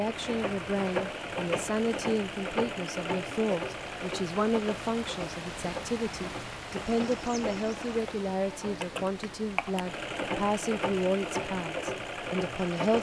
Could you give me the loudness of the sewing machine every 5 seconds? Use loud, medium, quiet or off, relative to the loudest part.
loud, medium, loud.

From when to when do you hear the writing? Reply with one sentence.
You can't hear the writing here.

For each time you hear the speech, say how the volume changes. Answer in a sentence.
The speech can be heard from 0.0 to 12.9 s, at a steady volume.